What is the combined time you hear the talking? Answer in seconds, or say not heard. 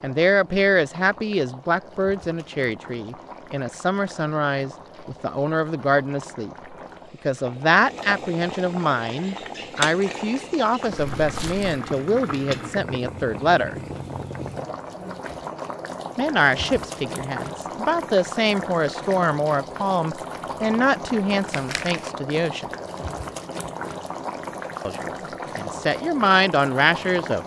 23 s.